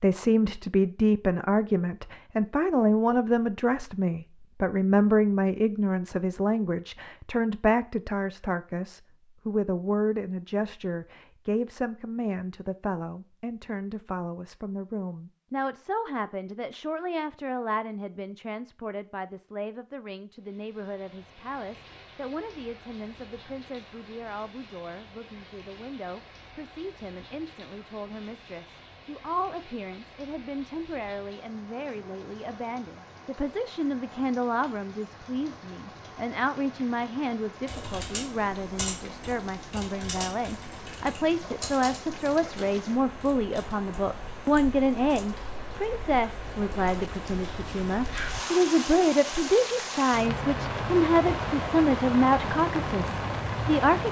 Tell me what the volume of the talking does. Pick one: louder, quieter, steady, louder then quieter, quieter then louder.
quieter then louder.